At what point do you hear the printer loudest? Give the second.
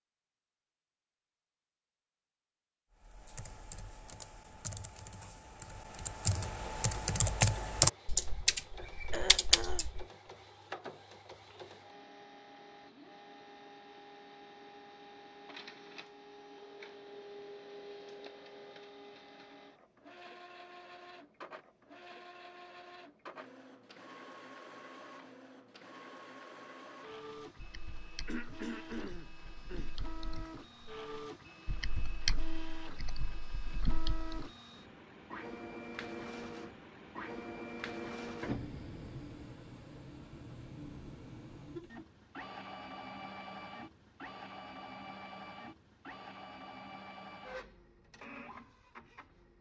38 s.